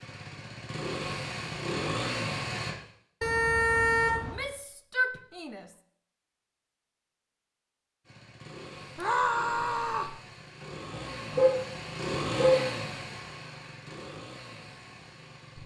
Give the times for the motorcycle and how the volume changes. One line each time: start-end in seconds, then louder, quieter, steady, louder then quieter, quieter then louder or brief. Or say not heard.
0.0-2.8 brief
8.1-15.6 louder then quieter.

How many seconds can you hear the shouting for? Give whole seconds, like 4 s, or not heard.
3 s.